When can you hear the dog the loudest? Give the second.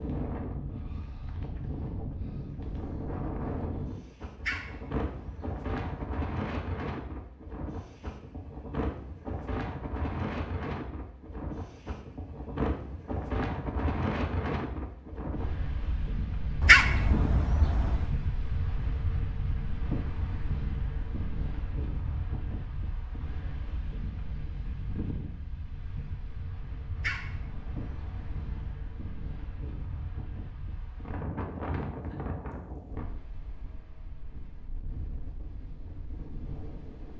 17 s.